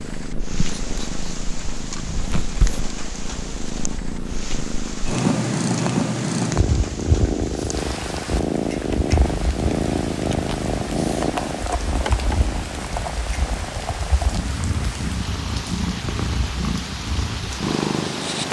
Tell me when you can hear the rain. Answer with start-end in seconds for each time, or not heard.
0.0-18.4.